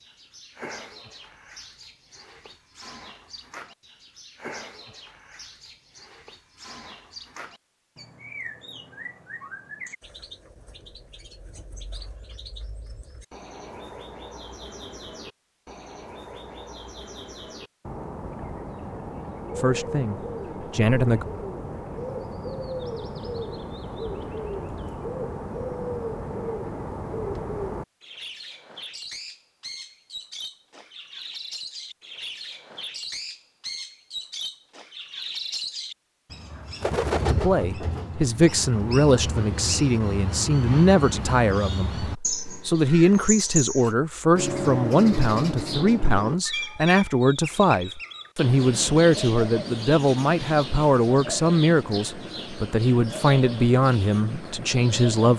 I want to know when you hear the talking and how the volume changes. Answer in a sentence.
The talking can be heard briefly from 19.6 to 21.2 s; and from 37.2 to 55.3 s, at a steady volume.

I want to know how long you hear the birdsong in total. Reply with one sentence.
You can hear the birdsong for 55 seconds altogether.